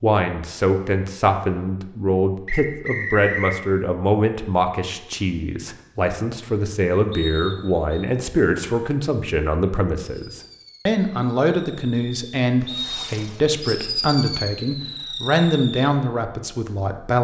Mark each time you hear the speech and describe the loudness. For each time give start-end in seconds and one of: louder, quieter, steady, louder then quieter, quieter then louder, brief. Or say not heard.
0.0-17.1 steady.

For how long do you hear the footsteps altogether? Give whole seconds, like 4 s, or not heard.
not heard.